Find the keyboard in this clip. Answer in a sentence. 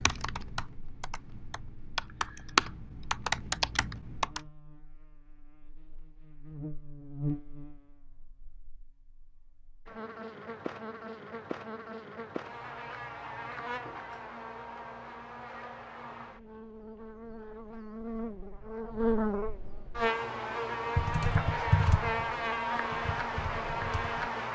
The keyboard can be heard from 0.0 to 4.4 s and from 20.9 to 24.3 s.